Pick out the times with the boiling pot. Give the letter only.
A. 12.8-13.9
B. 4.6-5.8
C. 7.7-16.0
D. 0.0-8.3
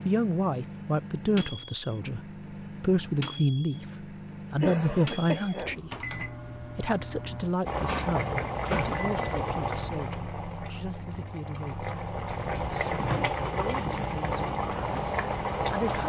C.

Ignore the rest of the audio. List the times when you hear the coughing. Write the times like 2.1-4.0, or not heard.
4.6-5.8.